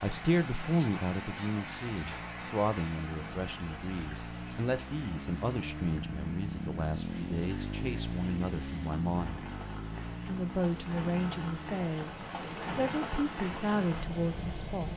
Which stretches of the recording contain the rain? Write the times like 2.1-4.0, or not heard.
0.0-14.9.